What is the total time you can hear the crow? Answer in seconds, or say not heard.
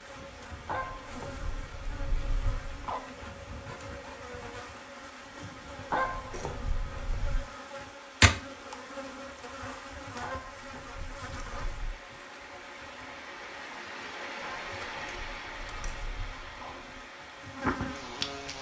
not heard.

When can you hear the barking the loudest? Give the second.
6 s.